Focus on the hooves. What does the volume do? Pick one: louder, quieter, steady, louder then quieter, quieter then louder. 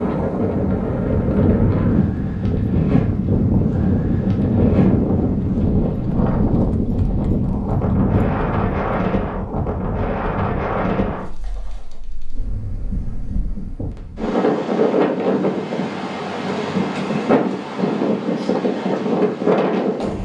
steady.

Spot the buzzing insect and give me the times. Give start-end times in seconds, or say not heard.
not heard.